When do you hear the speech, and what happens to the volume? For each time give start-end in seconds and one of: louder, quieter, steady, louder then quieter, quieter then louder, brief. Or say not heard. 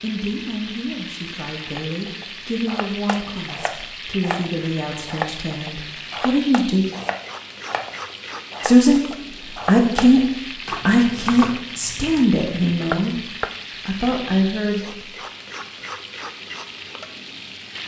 0.0-6.8 louder
8.6-9.1 brief
9.7-10.2 brief
10.8-13.2 brief
13.8-15.1 brief.